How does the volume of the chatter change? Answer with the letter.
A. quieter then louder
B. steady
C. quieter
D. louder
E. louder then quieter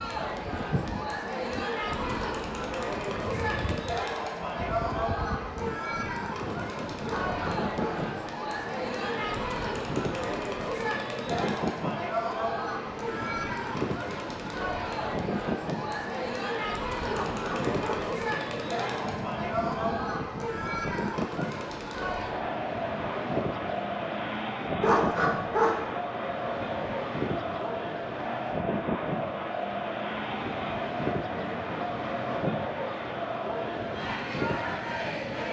B.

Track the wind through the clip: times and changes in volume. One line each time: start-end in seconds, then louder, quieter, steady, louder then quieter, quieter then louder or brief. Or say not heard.
0.0-35.4 steady.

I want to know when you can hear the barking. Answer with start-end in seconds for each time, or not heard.
7.0-8.1, 17.1-18.1, 24.8-25.8.